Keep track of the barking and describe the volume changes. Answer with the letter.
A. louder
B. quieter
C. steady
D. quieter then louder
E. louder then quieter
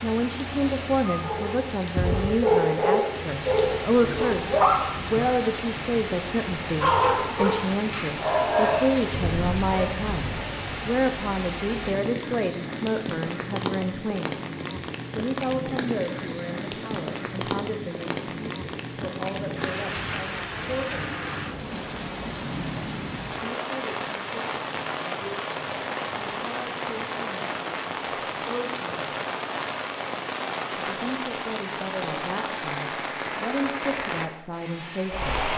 B.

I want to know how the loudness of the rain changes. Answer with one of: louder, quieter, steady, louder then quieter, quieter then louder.
steady.